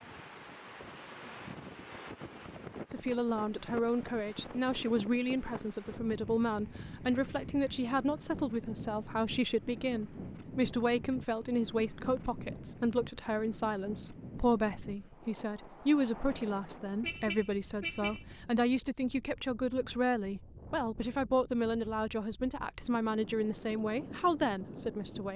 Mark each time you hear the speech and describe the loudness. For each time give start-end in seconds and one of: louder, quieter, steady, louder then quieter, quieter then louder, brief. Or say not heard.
2.9-25.3 steady.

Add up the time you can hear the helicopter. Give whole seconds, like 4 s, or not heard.
not heard.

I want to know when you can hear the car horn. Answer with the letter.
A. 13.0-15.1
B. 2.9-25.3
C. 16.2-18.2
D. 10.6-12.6
C.